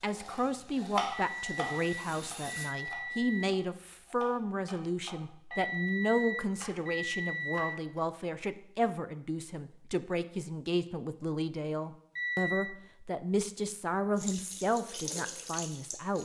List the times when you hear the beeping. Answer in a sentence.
You can hear the beeping from 1.1 to 3.5 s, from 5.5 to 7.8 s and from 12.2 to 12.8 s.